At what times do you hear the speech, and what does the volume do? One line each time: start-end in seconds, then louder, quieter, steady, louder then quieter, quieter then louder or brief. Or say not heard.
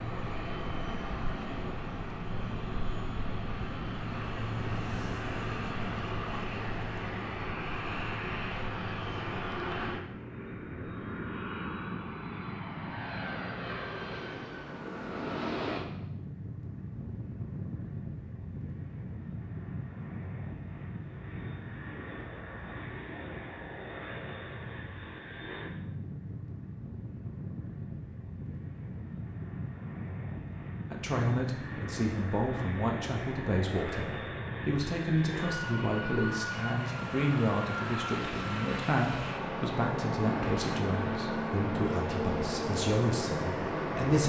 30.9-44.2 steady.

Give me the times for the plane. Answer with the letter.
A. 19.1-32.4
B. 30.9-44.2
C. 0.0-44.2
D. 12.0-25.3
C.